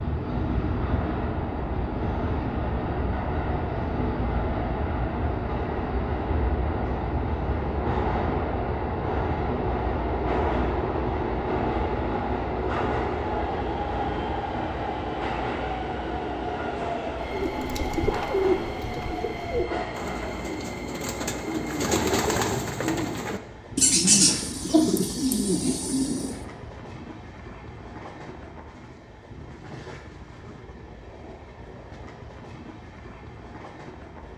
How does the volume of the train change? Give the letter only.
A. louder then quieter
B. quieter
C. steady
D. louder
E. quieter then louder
B.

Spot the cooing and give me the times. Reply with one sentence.
The cooing can be heard from 17.2 to 26.4 s.